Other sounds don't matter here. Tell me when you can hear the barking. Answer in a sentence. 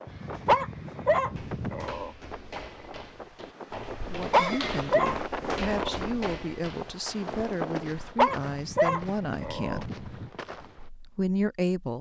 You can hear the barking from 0.5 to 2.1 s, from 4.3 to 6.0 s and from 8.2 to 9.8 s.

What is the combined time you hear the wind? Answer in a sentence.
You can hear the wind for 8 seconds altogether.